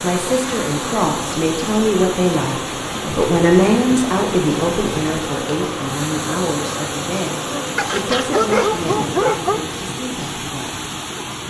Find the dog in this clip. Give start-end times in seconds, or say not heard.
7.8-9.6.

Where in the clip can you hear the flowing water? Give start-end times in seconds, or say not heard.
0.0-11.4.